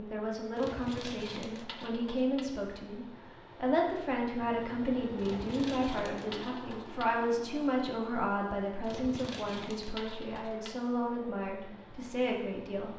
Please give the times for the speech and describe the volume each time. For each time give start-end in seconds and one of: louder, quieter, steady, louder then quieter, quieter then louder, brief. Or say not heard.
0.0-12.9 steady.